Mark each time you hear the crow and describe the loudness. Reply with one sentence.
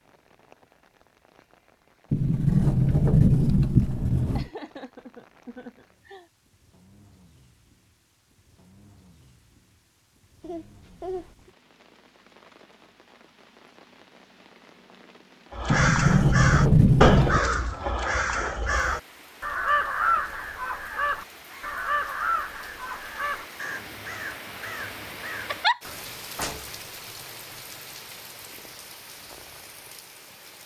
You can hear the crow from 15.5 to 26.1 s, getting quieter.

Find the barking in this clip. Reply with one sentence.
The barking can't be heard in this clip.